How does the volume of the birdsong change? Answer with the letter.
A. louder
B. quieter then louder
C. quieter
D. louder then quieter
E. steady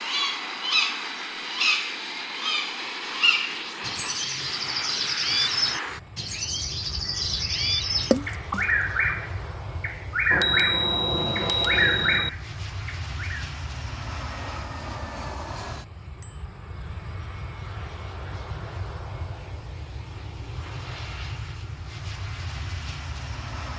E.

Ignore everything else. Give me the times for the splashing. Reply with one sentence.
The splashing can be heard from 8.0 to 8.7 s.